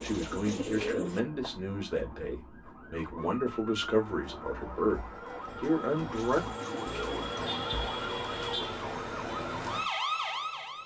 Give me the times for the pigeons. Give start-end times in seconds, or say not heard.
0.0-1.2, 6.2-7.3.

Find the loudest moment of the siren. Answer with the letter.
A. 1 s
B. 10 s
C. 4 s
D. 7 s
B.